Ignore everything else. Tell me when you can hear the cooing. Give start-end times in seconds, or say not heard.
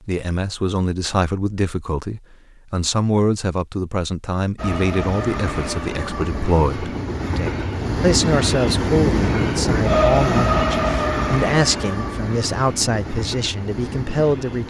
not heard.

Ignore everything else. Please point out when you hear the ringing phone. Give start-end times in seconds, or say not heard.
not heard.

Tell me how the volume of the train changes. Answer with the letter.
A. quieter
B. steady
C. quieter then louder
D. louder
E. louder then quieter
E.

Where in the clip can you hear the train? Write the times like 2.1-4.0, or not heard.
4.5-14.6.